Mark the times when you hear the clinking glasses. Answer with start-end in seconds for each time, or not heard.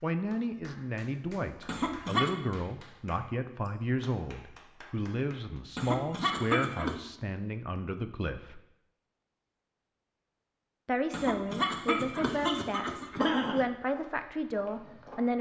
not heard.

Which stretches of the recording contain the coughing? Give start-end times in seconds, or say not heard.
1.6-2.4, 5.8-7.0, 11.1-13.7.